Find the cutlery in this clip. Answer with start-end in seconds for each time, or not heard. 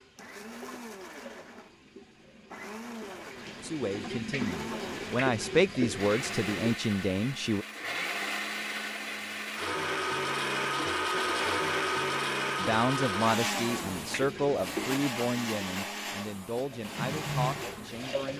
not heard.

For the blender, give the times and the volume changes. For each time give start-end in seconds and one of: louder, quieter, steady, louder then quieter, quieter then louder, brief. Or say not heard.
0.1-18.1 louder then quieter.